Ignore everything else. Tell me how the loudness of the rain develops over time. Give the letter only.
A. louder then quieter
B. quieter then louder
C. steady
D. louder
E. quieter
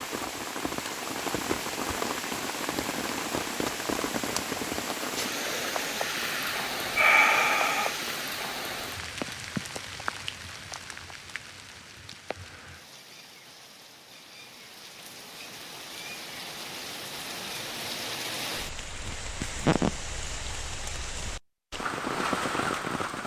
B.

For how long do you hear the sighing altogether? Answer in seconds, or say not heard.
2 s.